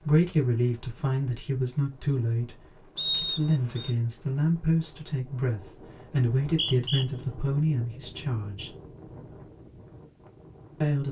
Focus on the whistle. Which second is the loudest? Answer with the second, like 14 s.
3 s.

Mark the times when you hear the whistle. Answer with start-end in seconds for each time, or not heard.
3.0-3.9, 6.4-7.0.